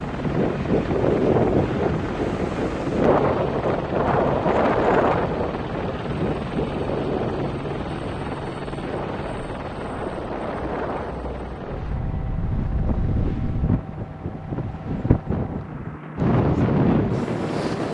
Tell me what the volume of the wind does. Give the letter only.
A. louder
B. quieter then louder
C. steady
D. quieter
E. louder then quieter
B.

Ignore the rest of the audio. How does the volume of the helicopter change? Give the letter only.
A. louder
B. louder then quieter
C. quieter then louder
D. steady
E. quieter
E.